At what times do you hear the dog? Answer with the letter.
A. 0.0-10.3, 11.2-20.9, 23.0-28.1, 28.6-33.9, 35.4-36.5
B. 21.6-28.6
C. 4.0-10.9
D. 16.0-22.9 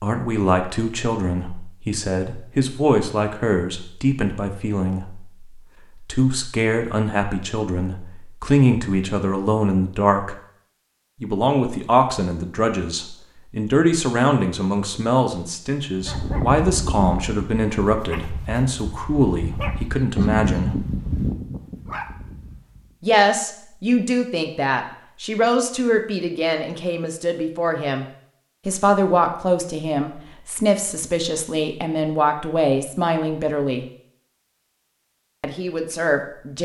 D.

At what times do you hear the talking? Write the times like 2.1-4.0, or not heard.
0.0-10.3, 11.2-20.9, 23.0-28.1, 28.6-33.9, 35.4-36.5.